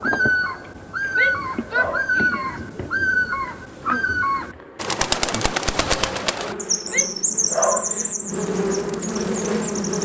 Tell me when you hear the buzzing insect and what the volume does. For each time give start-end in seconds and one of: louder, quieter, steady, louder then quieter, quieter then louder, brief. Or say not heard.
0.0-9.9 louder.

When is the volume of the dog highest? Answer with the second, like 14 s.
8 s.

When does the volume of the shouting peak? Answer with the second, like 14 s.
2 s.